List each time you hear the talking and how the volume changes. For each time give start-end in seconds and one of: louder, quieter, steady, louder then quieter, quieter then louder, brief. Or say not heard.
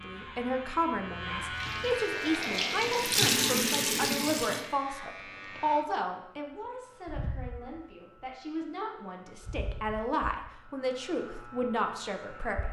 0.0-12.6 quieter then louder.